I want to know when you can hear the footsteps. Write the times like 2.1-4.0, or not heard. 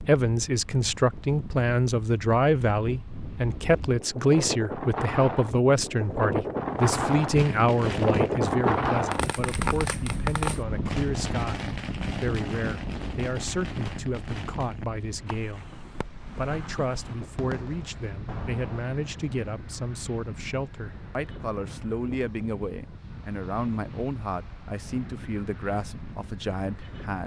not heard.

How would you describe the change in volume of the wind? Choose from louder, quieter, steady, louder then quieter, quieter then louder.
louder then quieter.